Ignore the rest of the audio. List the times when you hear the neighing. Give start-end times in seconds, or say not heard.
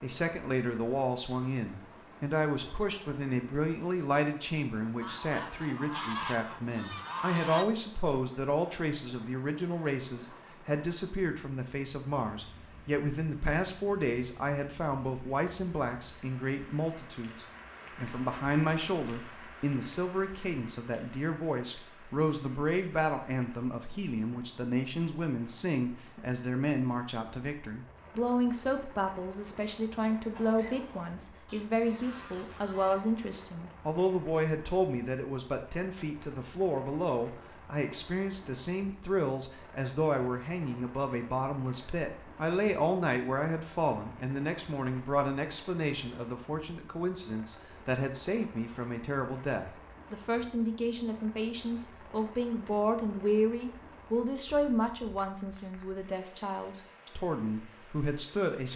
not heard.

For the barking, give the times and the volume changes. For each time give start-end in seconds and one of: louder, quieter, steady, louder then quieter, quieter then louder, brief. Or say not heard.
not heard.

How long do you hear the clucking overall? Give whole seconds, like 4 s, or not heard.
5 s.